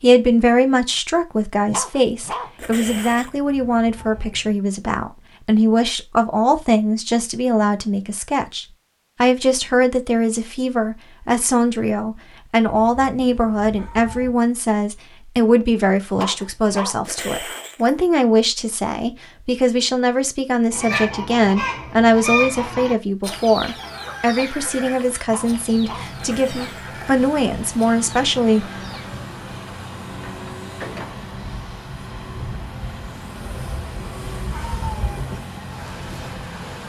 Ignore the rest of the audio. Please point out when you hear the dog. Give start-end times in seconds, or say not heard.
1.6-3.3, 16.1-18.0, 25.2-27.0.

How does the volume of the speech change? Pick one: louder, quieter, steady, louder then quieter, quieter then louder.
steady.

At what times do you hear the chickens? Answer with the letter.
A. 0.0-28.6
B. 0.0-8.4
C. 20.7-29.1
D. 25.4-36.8
C.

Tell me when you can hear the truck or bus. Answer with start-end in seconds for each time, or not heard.
25.4-36.8.